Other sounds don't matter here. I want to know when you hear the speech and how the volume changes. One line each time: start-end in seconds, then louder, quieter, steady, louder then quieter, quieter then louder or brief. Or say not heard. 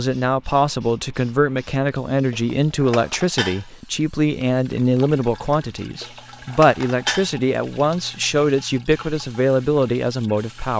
0.0-10.7 steady.